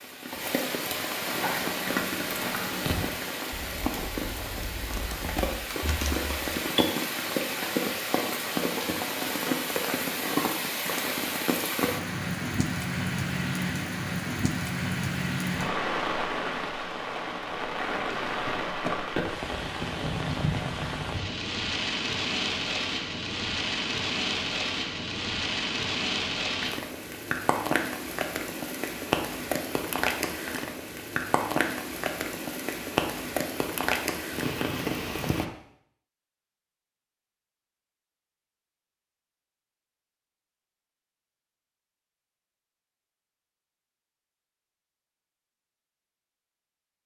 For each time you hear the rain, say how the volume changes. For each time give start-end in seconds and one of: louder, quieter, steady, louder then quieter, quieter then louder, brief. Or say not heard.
0.0-35.5 steady.